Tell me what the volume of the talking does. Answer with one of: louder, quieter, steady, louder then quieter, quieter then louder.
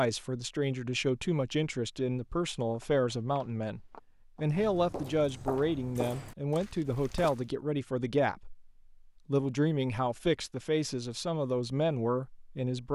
steady.